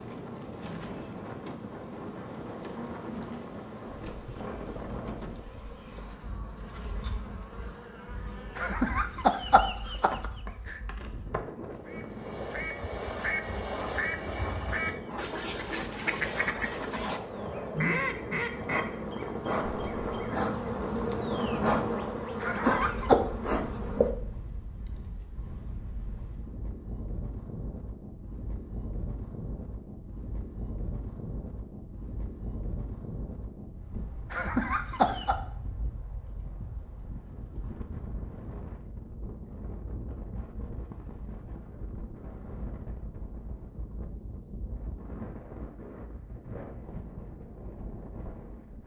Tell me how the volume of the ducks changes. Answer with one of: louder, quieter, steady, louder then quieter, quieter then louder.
louder.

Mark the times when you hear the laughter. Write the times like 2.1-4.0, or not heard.
8.6-10.8, 22.4-23.1, 34.3-35.4.